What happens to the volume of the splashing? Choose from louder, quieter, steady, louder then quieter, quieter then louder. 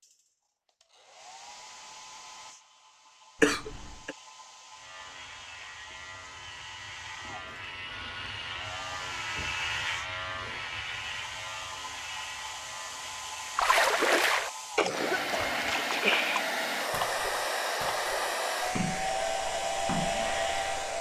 quieter.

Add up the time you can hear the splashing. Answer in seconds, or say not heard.
7 s.